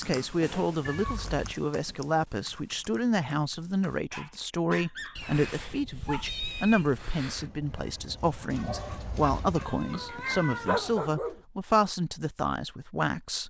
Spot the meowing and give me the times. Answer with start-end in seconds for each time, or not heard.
0.8-1.4, 5.2-7.5, 9.6-11.0.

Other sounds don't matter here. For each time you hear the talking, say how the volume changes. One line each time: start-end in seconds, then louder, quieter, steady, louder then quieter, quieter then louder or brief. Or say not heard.
0.0-13.4 steady.